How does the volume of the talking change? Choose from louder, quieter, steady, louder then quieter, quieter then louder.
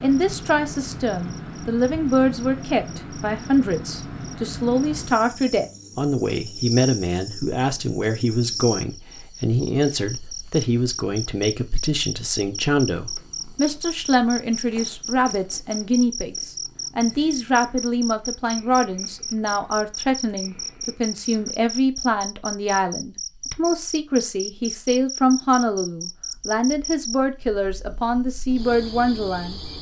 steady.